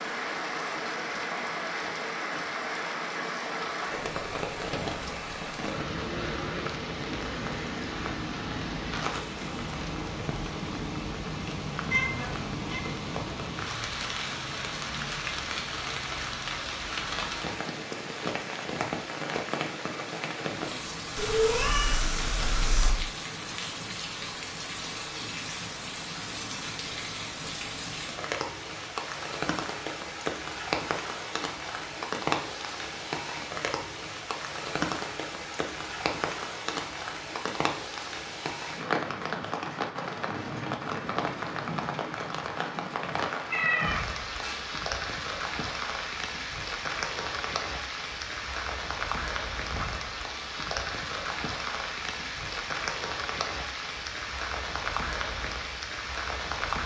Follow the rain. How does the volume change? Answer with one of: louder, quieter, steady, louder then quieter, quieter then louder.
steady.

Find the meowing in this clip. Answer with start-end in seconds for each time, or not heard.
11.9-12.9, 21.1-22.9, 43.5-44.6.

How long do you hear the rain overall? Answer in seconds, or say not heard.
57 s.